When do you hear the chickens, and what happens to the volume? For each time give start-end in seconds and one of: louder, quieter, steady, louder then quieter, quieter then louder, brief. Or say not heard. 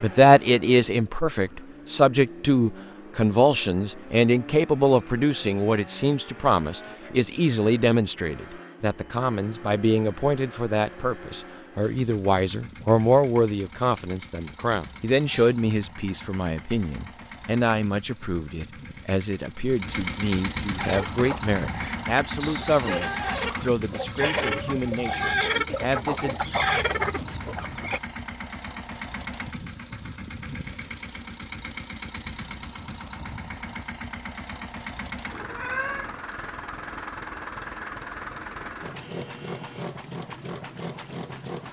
20.8-28.0 louder.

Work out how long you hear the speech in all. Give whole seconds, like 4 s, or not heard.
26 s.